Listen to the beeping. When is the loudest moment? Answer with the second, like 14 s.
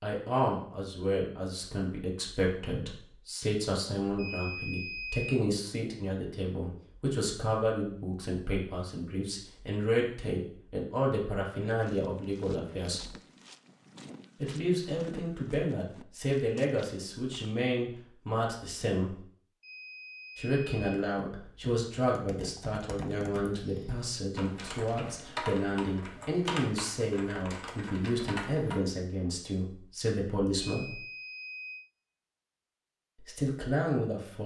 5 s.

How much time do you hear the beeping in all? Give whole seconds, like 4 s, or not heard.
4 s.